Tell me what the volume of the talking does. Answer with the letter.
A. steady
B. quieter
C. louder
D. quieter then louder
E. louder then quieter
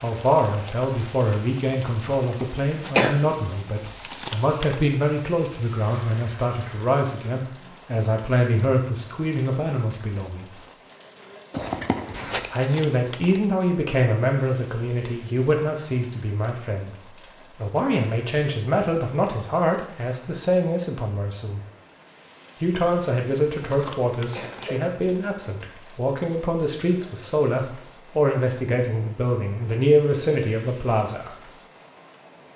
A.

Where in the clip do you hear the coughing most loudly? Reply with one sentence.
The loudest moment of the coughing is at 3 seconds.